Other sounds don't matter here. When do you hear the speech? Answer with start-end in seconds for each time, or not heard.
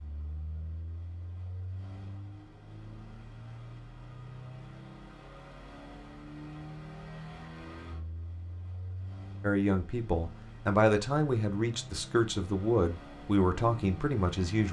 9.4-14.6.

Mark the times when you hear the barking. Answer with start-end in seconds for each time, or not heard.
not heard.